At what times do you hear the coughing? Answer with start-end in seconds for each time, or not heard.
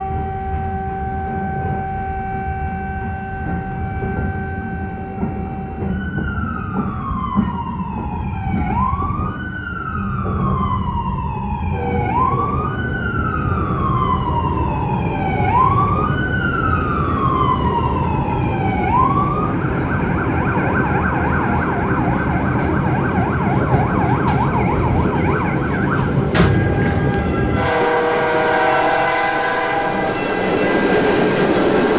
not heard.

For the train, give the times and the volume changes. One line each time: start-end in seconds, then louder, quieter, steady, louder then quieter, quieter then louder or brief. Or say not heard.
0.0-31.9 louder.